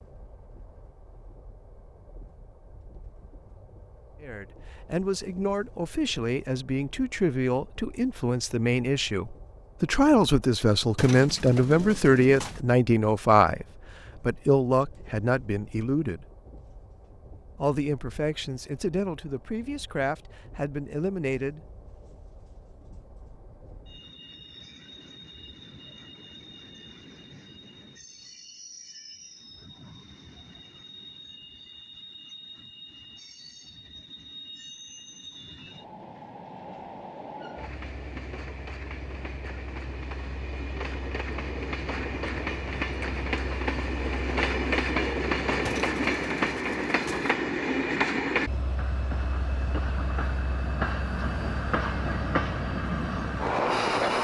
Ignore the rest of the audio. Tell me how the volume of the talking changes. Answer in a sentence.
The loudness of the talking goes up, then down.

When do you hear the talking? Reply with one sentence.
The talking can be heard from 4.2 to 16.2 s and from 17.6 to 21.6 s.